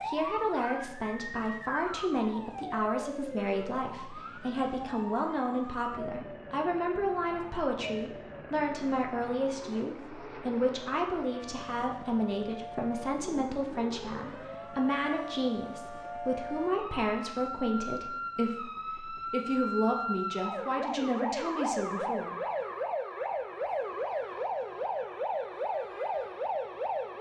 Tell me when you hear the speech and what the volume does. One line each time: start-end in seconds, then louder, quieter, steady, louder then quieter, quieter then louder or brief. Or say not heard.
0.1-22.4 steady.